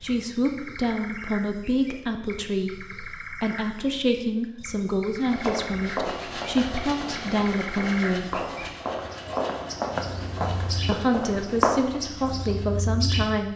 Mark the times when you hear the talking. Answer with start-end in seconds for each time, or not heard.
0.0-8.4, 10.8-13.5.